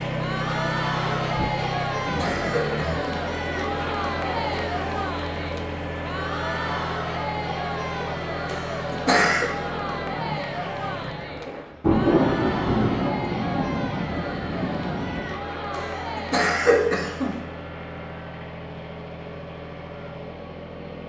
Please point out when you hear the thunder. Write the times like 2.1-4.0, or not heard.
11.8-15.3.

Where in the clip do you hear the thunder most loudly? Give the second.
12 s.